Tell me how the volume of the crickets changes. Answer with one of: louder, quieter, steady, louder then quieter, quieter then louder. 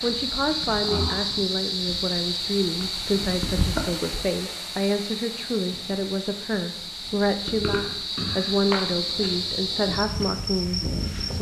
quieter then louder.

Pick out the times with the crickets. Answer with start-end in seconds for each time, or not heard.
0.0-11.3.